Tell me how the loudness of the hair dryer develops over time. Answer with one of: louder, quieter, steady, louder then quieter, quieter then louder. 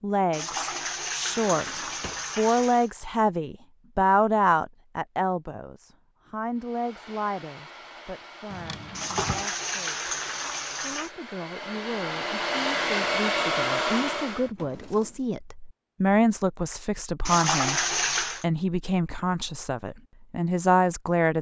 louder.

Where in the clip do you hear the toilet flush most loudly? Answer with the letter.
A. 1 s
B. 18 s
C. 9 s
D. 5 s
B.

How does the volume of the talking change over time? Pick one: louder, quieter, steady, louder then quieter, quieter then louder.
quieter then louder.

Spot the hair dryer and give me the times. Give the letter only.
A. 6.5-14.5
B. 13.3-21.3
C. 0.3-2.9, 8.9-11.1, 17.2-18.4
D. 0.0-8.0
A.